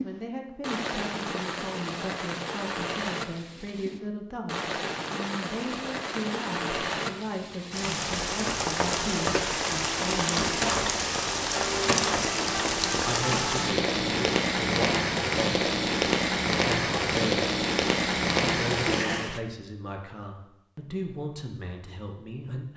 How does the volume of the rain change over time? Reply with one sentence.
The loudness of the rain goes up.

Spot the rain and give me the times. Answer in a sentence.
You can hear the rain from 0.0 to 19.4 s.